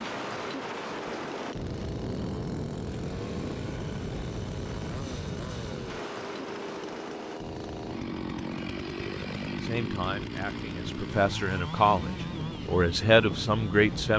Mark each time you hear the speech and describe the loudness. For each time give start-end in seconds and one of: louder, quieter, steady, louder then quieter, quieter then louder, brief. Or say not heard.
9.6-14.1 louder.